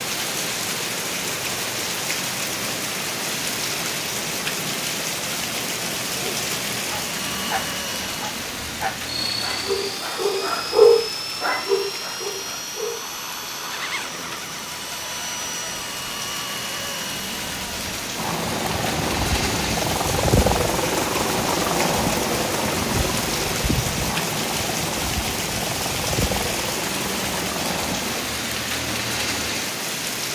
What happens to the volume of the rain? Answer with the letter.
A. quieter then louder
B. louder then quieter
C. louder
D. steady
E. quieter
A.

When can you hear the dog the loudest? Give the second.
11 s.